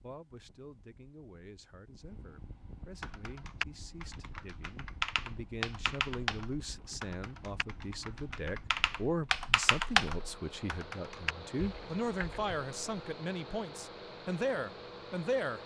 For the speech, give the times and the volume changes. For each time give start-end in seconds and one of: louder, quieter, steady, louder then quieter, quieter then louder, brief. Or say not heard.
0.0-15.6 louder.